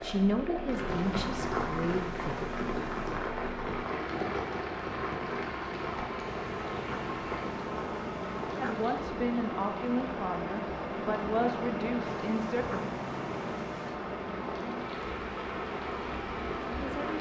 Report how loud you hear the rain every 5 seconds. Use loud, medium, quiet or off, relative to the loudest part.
loud, loud, medium, loud.